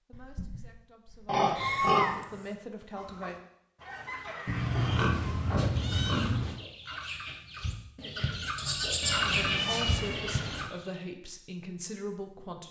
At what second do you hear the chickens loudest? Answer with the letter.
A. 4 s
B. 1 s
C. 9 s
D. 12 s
C.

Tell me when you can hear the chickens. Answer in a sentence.
The chickens can be heard from 2.9 to 11.1 s.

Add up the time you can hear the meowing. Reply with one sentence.
You can hear the meowing for 5 seconds altogether.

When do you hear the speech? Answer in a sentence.
You can hear the speech from 0.1 to 3.4 s and from 9.2 to 12.6 s.